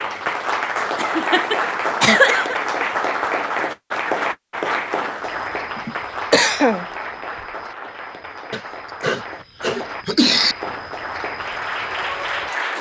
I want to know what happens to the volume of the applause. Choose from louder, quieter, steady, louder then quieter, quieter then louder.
quieter then louder.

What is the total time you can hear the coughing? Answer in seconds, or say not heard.
5 s.